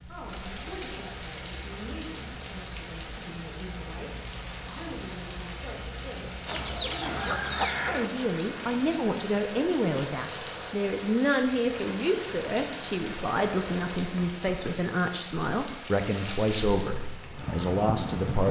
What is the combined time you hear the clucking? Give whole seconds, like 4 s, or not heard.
2 s.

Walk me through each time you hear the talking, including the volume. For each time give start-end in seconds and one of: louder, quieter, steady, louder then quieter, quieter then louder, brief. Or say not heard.
0.1-18.4 louder.